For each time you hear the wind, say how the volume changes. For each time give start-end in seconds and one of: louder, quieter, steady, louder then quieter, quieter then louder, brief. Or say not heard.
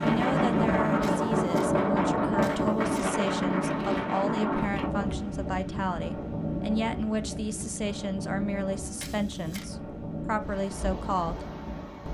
0.0-12.0 quieter.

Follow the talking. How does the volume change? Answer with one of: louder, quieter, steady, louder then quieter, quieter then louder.
steady.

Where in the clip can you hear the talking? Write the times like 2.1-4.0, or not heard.
0.0-11.4.